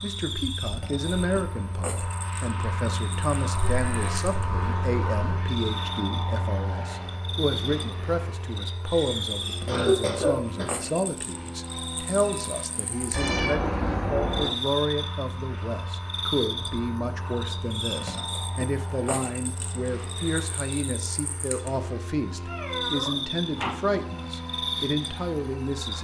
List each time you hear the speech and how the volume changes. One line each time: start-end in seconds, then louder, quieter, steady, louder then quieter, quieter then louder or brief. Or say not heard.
0.0-25.9 steady.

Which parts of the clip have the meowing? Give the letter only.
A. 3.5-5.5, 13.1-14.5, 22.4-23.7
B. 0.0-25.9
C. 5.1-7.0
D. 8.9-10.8
A.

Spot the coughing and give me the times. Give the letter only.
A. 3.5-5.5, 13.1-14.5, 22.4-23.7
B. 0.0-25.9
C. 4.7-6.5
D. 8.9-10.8
D.